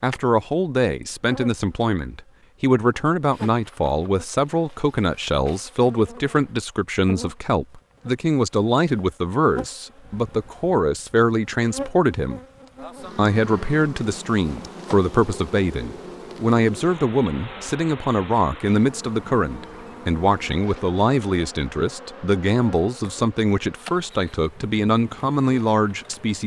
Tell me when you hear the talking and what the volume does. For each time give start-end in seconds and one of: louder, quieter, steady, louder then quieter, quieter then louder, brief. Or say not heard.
0.0-12.4 steady
13.2-26.4 steady.